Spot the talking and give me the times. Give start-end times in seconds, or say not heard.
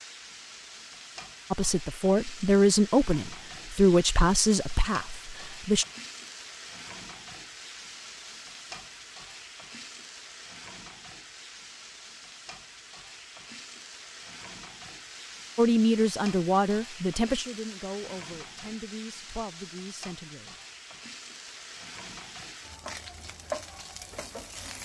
1.5-5.8, 15.6-20.6.